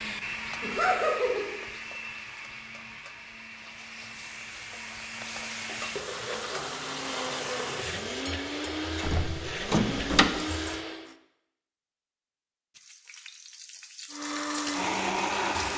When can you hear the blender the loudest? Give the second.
15 s.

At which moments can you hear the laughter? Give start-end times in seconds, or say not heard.
0.6-1.4.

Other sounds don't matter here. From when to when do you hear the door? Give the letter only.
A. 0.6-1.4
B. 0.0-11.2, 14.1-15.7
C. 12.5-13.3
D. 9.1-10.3
D.